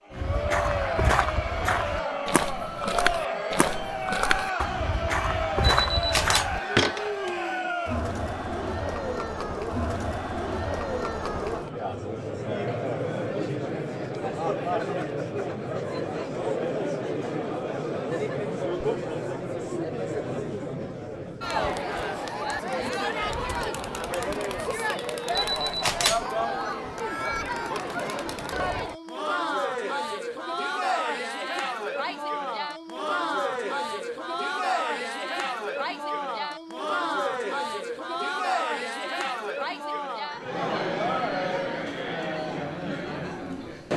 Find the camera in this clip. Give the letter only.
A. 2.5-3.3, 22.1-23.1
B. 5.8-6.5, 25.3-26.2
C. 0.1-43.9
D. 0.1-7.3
B.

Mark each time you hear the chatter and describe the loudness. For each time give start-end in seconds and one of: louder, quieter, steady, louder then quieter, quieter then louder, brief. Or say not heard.
0.1-43.9 steady.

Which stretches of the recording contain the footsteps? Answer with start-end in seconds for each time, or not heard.
0.1-7.3.